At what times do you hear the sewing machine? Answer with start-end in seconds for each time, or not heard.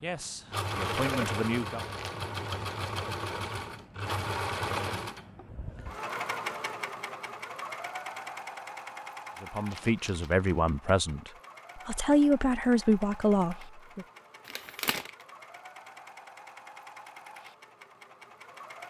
0.0-18.8.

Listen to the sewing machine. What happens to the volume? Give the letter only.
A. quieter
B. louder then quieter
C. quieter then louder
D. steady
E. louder
A.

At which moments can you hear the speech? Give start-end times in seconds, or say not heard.
0.0-1.8, 9.4-14.1.